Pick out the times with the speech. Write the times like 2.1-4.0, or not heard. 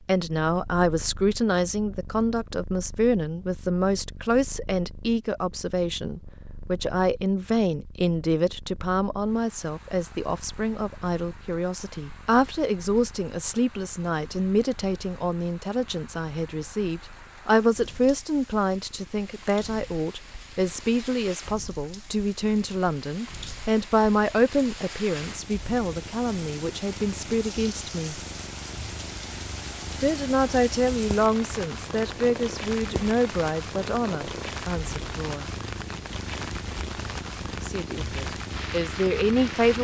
0.1-28.2, 30.0-35.5, 37.6-39.7.